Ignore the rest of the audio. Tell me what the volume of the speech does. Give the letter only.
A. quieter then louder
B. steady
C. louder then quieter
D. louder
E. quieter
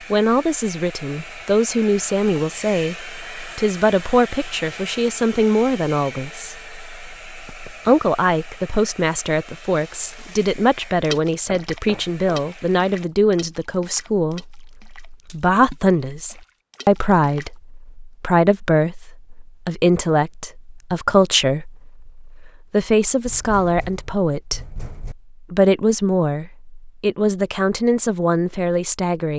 B.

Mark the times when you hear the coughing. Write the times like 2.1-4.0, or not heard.
not heard.